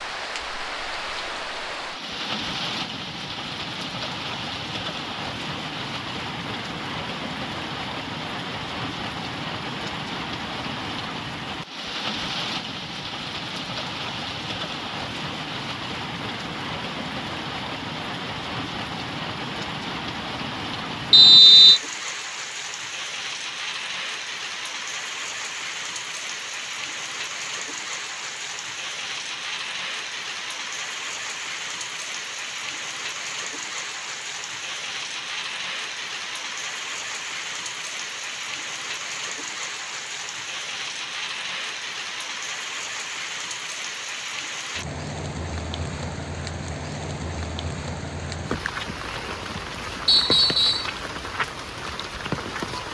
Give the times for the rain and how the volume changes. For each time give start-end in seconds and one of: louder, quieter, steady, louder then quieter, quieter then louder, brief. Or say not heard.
0.0-52.8 steady.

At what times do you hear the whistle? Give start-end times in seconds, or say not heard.
21.1-21.8, 50.0-50.9.